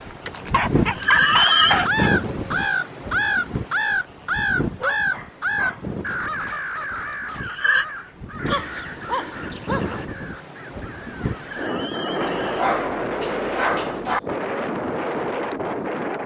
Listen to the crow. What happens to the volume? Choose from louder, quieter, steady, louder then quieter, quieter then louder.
quieter.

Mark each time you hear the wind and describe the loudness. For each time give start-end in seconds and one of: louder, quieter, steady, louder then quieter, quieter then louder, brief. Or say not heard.
0.0-16.2 quieter then louder.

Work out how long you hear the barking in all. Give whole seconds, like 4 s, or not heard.
7 s.